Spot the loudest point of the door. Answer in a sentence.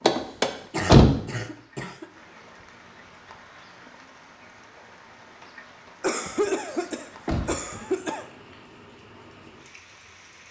The loudest moment of the door is at 1 second.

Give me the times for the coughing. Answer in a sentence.
You can hear the coughing from 0.7 to 2.0 s and from 6.0 to 8.2 s.